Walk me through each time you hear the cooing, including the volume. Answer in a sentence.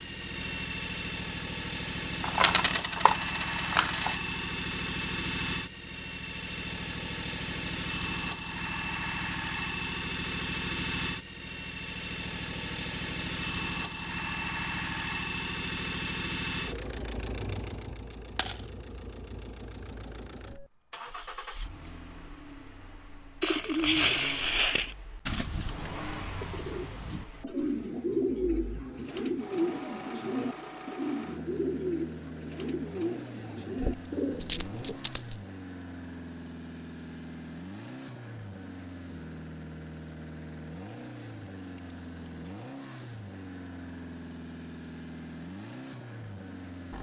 You can hear the cooing from 23.4 to 35.0 s, getting quieter.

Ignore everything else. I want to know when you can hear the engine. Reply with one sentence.
The engine can be heard from 0.0 to 46.9 s.